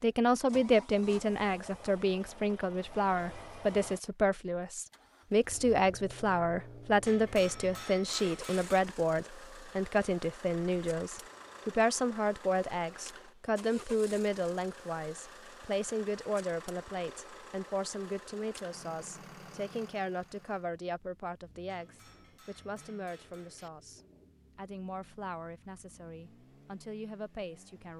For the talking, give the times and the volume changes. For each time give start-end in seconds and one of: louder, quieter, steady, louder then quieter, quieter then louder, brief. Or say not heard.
0.0-27.9 quieter.